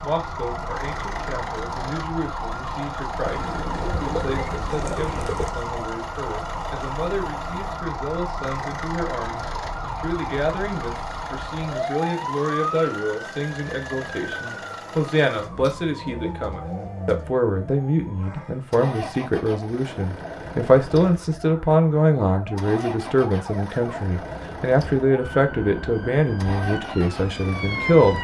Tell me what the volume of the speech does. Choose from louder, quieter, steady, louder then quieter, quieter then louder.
louder.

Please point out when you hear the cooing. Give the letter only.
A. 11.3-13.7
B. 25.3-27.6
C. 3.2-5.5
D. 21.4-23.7
C.